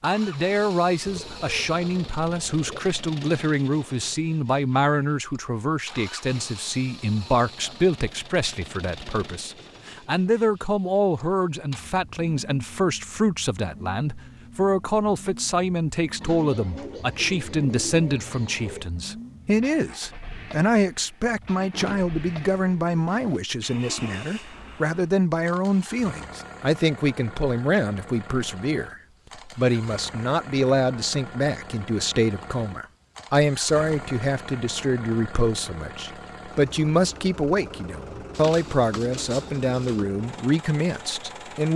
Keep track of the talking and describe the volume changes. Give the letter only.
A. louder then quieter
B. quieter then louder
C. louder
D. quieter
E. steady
E.